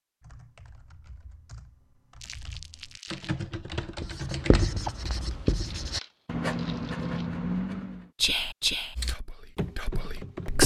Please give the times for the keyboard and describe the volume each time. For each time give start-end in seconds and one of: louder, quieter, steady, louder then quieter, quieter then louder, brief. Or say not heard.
0.2-5.4 louder
8.9-10.6 brief.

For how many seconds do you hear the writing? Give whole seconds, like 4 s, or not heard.
4 s.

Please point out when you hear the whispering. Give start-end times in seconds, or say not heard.
8.2-10.6.